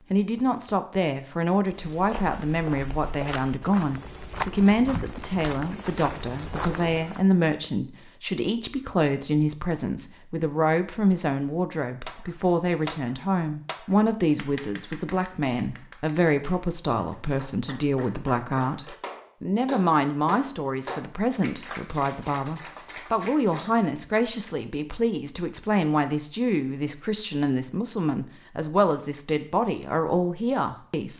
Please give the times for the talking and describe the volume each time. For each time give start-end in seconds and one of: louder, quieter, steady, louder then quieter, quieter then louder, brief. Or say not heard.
0.1-31.1 steady.